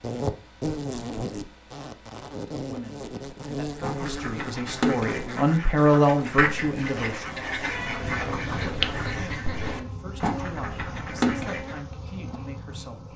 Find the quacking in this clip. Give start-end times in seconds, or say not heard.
3.8-11.8.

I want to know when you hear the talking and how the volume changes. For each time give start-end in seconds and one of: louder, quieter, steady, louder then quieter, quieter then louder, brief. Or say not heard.
2.4-7.4 louder then quieter
8.1-13.1 steady.